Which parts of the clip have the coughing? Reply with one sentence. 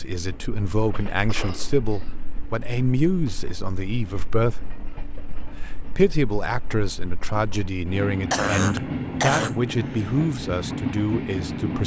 The coughing can be heard from 1.2 to 2.1 s and from 8.3 to 10.1 s.